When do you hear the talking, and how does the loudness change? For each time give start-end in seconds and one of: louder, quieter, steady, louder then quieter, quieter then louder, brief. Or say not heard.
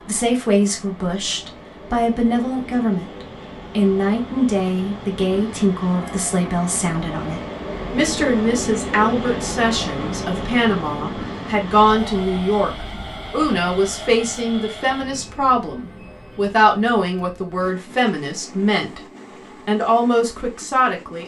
0.1-19.0 steady
19.6-21.2 brief.